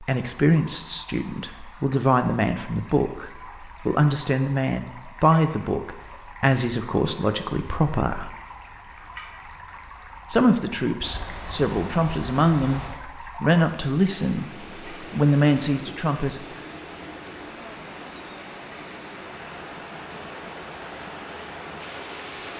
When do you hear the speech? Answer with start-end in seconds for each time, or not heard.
0.0-8.3, 10.3-16.4.